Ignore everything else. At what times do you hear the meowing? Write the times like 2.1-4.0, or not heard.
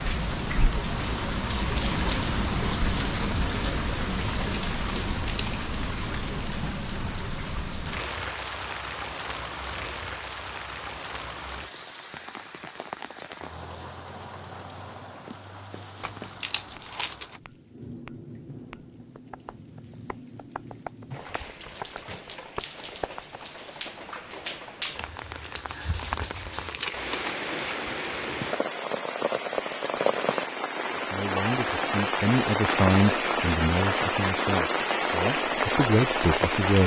not heard.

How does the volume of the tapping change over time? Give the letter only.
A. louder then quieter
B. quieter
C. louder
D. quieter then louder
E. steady
C.